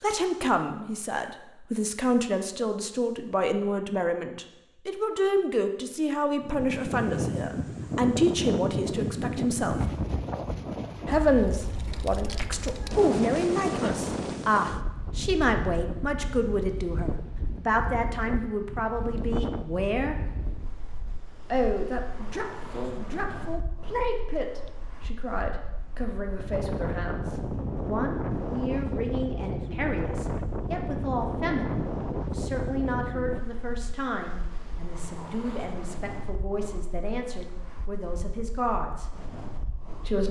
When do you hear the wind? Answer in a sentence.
The wind can be heard from 6.4 to 40.2 s.